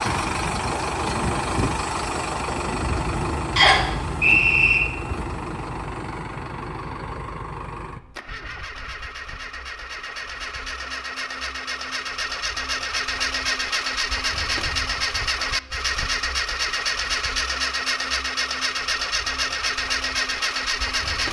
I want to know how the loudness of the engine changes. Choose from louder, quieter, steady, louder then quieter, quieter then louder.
quieter then louder.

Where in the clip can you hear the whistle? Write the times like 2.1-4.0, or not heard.
3.5-4.8.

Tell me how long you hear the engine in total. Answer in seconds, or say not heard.
21 s.